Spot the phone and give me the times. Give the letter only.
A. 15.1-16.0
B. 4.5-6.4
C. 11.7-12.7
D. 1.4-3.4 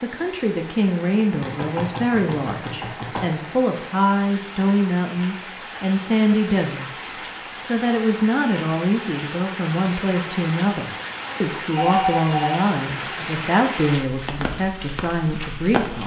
C.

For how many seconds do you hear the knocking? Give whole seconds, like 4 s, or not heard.
2 s.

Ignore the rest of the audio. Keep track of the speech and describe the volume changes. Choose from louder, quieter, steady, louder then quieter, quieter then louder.
steady.